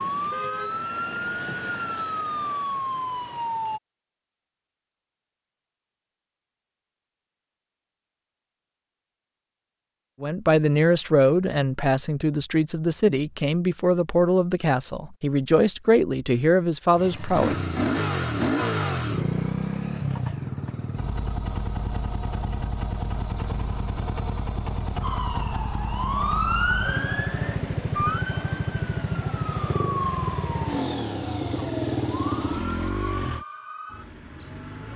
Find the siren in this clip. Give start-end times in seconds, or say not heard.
0.0-3.8, 25.0-34.9.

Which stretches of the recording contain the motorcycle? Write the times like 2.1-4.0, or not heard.
16.9-33.5.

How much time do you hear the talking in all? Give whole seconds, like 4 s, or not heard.
7 s.